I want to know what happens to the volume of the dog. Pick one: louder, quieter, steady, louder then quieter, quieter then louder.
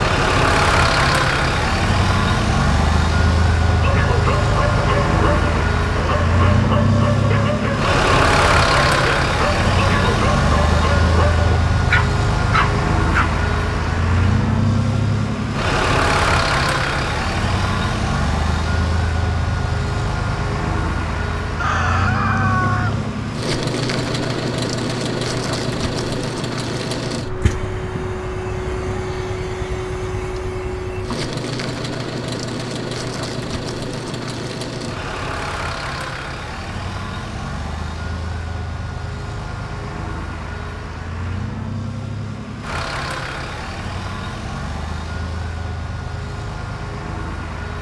steady.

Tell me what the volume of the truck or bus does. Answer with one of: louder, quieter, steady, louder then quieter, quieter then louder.
quieter.